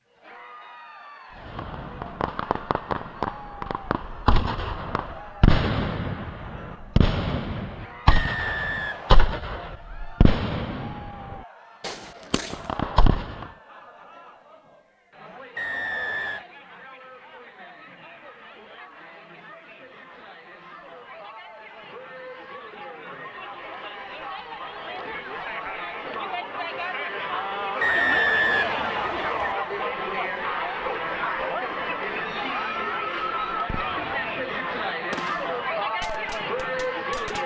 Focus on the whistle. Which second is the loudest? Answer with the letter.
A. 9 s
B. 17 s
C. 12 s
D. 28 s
D.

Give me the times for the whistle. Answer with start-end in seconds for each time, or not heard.
8.1-9.3, 15.6-16.4, 27.8-29.6.